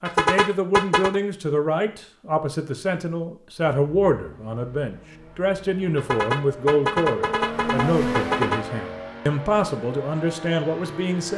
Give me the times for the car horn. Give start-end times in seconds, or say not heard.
0.1-1.2, 6.0-8.7.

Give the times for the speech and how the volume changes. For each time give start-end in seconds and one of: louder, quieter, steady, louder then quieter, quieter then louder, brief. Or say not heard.
0.0-11.3 steady.